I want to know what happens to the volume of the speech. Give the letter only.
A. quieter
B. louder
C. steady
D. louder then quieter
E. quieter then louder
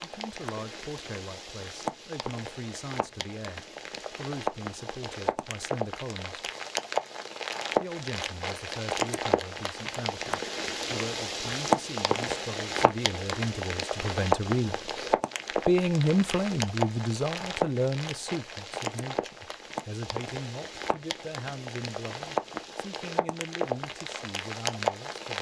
D.